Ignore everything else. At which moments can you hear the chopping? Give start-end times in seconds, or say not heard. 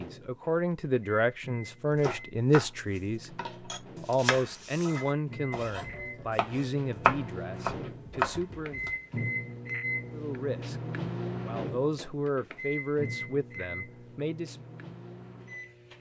2.0-8.9.